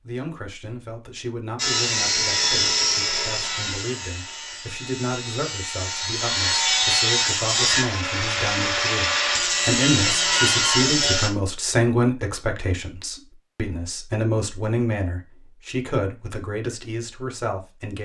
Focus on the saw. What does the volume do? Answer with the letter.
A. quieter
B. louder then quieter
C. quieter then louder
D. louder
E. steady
C.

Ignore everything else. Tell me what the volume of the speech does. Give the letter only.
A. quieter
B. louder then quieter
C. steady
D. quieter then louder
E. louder
E.